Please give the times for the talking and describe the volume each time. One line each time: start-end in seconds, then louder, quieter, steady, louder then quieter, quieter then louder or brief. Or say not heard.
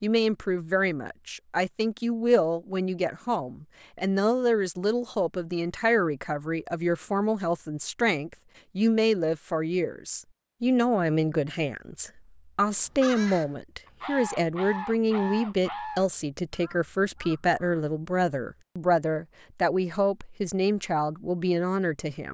0.0-22.3 steady.